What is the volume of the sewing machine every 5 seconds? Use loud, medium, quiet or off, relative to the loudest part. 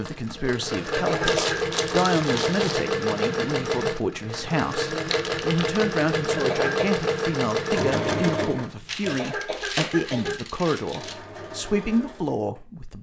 loud, loud, quiet.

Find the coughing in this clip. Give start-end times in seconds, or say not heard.
0.9-1.6, 6.3-7.0, 9.1-10.4.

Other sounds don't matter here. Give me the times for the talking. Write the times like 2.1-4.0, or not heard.
0.0-12.9.